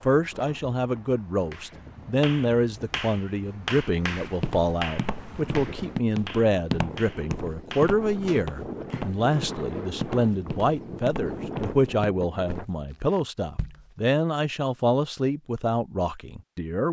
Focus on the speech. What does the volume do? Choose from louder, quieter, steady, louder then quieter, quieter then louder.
steady.